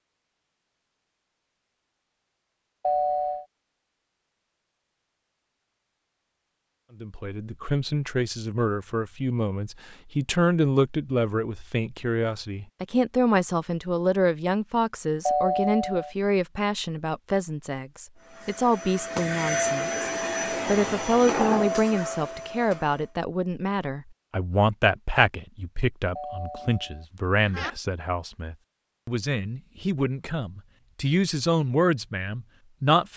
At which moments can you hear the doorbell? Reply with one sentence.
You can hear the doorbell from 2.8 to 3.5 s, from 15.2 to 16.1 s and from 26.1 to 27.7 s.